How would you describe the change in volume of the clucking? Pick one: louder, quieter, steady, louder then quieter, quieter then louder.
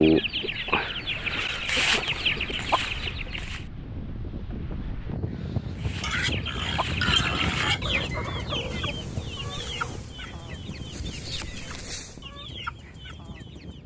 quieter.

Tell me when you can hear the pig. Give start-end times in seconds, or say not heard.
6.0-8.1.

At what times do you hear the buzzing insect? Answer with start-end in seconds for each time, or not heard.
8.5-12.2.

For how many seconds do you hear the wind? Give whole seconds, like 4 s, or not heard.
14 s.